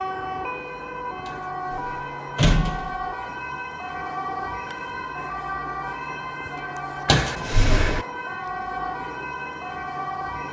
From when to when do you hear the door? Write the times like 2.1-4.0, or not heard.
1.2-3.0, 7.0-8.1.